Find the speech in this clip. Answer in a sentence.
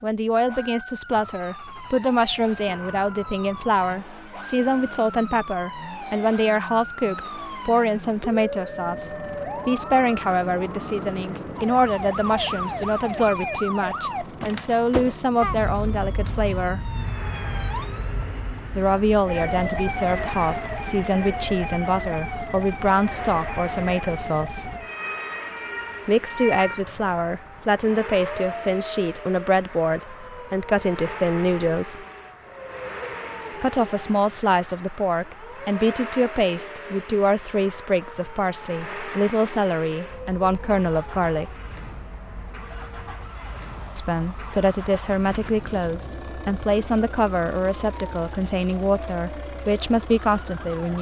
The speech can be heard from 0.0 to 16.9 s, from 18.8 to 24.6 s, from 26.1 to 32.0 s, from 33.6 to 41.5 s and from 44.0 to 50.9 s.